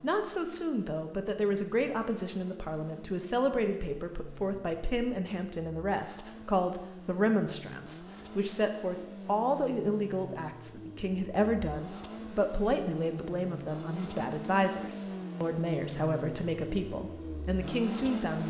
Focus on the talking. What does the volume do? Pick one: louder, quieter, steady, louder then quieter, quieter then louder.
steady.